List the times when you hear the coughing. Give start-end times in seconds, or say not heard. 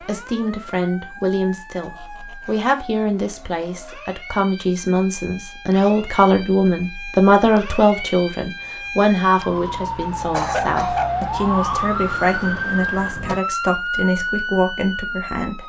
10.3-11.2.